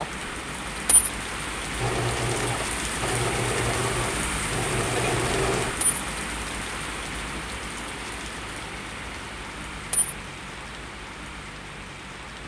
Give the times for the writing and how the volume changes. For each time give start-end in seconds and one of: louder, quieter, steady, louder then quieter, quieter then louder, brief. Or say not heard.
not heard.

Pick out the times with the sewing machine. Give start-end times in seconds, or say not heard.
1.8-5.8.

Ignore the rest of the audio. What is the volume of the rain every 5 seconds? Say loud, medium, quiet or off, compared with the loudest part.
loud, loud, medium.